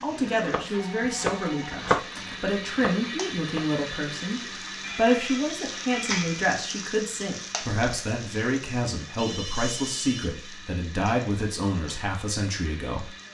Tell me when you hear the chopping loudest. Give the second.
2 s.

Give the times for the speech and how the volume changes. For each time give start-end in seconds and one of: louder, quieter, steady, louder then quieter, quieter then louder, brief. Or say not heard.
0.0-13.1 steady.